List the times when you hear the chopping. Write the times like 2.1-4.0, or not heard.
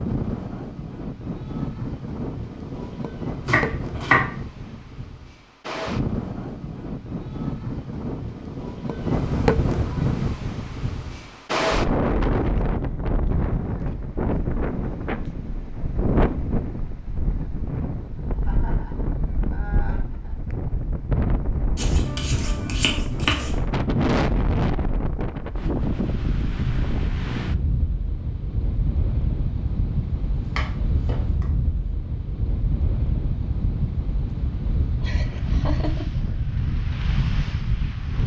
3.5-4.2, 21.8-23.6, 30.4-31.8.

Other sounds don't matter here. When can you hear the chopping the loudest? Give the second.
4 s.